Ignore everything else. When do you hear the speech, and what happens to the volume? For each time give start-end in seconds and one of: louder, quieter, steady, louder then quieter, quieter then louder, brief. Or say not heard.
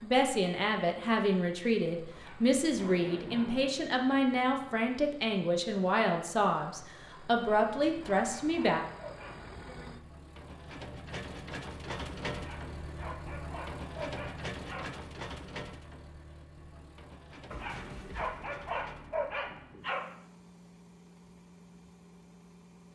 0.0-8.8 steady.